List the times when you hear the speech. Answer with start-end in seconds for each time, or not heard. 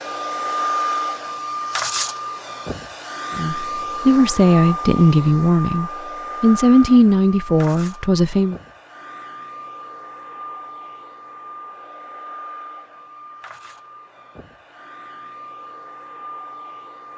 3.4-8.6.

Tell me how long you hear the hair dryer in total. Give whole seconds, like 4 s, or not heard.
17 s.